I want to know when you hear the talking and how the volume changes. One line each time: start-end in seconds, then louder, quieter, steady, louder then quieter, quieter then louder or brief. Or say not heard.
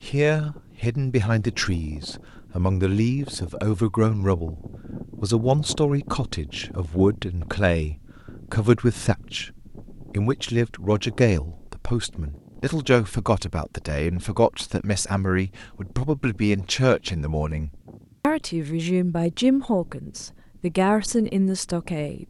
0.0-22.2 steady.